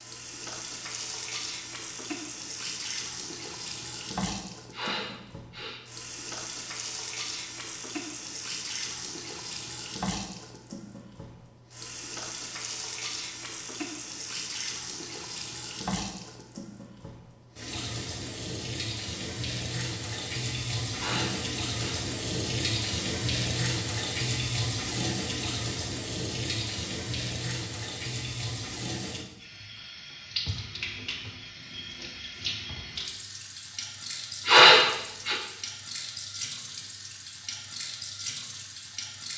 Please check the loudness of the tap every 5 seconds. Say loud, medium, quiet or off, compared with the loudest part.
medium, medium, medium, medium, loud, loud, medium, medium.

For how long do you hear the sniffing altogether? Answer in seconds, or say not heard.
3 s.